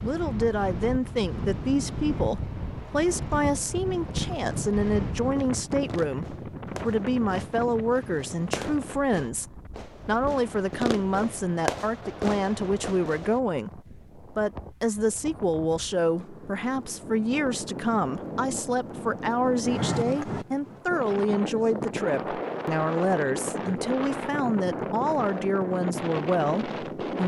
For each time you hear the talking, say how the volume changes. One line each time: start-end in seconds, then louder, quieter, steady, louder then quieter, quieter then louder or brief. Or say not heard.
0.0-27.2 steady.